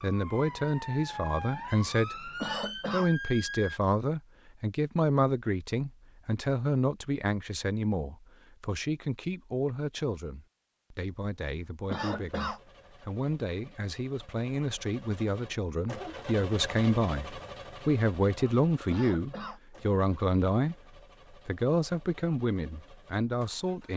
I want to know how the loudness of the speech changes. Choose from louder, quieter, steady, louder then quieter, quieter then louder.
quieter then louder.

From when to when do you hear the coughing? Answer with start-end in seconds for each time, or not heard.
2.4-3.1, 11.8-12.6, 18.9-19.6.